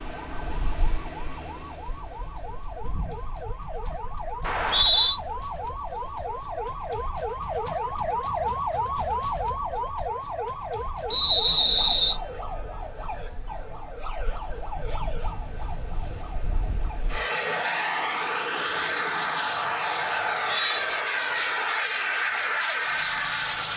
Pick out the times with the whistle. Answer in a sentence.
You can hear the whistle from 4.4 to 5.2 s, from 11.1 to 12.2 s and from 20.2 to 20.9 s.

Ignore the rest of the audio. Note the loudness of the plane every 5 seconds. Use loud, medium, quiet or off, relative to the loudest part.
quiet, quiet, quiet, loud, loud.